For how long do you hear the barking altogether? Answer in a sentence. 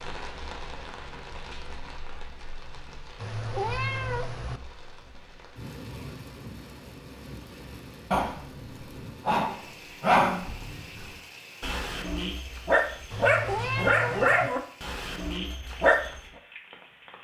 The barking can be heard for 8 seconds in total.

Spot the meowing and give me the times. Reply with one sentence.
The meowing can be heard from 3.1 to 4.6 s and from 13.1 to 14.5 s.